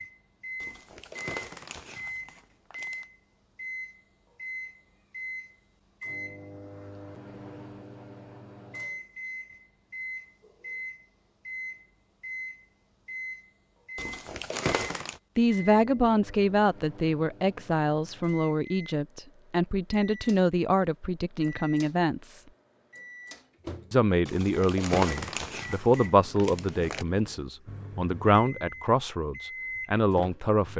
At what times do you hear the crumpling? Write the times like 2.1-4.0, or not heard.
0.6-3.0, 13.9-15.2, 24.2-27.1.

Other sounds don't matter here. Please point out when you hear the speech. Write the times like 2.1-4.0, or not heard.
15.3-22.4, 23.9-30.7.